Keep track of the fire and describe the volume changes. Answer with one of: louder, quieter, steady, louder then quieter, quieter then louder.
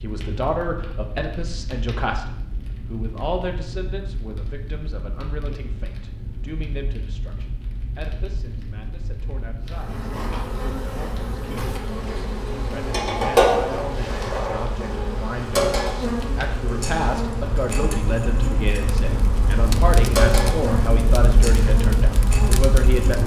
louder.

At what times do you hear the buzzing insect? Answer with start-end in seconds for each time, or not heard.
9.7-23.2.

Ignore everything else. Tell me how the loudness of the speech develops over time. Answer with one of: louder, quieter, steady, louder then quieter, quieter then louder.
quieter then louder.